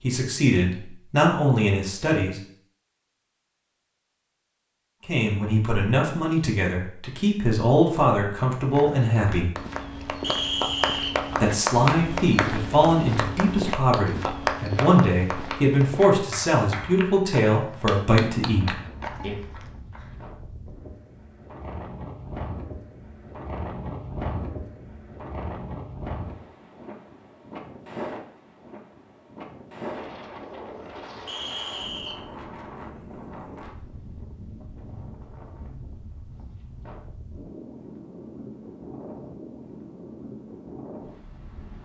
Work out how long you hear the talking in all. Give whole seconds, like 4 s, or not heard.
15 s.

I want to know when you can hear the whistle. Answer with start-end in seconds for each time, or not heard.
10.2-11.3, 31.2-32.2.